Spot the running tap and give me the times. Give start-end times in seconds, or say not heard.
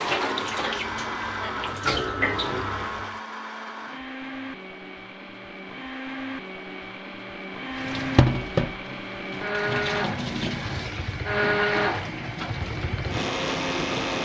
0.0-3.2, 7.7-14.2.